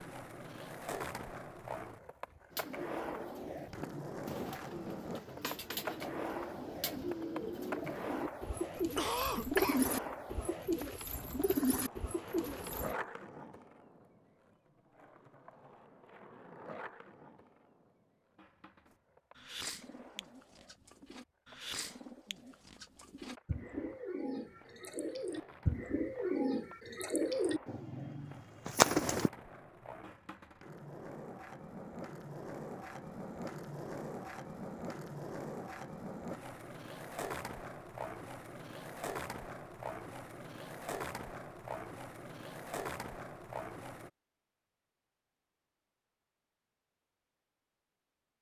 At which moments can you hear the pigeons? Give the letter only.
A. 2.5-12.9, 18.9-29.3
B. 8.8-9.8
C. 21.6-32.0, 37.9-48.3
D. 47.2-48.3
A.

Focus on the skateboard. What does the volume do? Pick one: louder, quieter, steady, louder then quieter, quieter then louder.
quieter then louder.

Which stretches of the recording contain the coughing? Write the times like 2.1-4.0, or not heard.
8.8-9.8.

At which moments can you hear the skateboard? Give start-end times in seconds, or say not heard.
0.0-44.1.